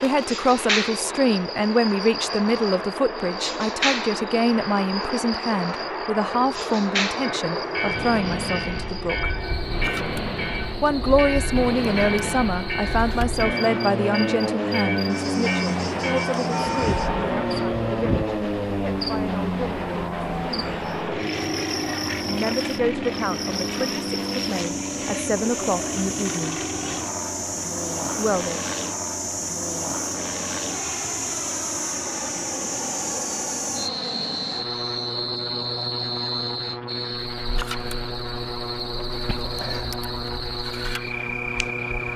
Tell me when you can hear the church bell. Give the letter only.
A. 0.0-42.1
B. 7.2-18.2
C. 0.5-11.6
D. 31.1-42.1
B.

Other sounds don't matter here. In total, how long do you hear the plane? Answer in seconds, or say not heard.
42 s.